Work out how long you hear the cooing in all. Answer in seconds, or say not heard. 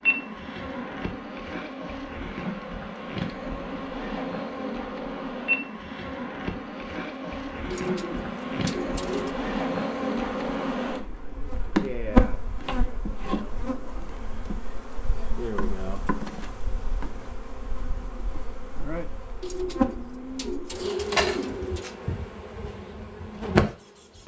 4 s.